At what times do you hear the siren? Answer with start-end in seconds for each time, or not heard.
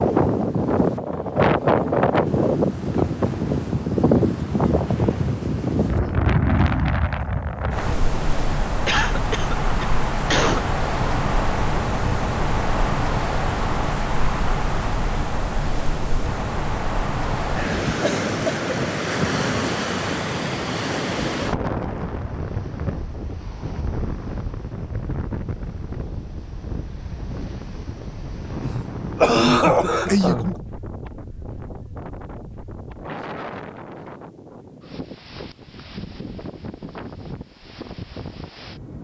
not heard.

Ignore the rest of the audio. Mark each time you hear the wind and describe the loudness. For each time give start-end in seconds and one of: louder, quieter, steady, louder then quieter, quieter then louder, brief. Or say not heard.
0.0-38.9 quieter.